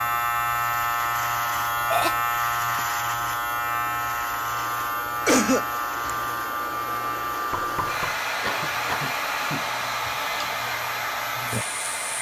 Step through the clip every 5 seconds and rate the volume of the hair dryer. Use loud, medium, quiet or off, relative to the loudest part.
medium, loud, loud.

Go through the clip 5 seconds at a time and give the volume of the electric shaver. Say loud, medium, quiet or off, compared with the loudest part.
loud, medium, medium.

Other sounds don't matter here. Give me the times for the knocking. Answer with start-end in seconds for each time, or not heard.
7.5-8.2.